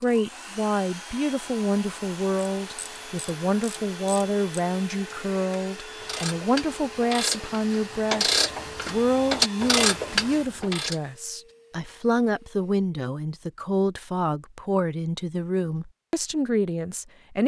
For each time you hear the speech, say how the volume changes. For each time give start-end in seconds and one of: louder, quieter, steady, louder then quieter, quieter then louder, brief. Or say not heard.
0.0-17.4 steady.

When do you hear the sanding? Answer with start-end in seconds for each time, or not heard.
not heard.